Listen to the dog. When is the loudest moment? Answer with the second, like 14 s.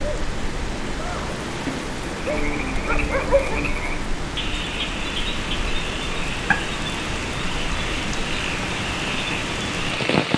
3 s.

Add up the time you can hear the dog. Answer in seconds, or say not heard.
2 s.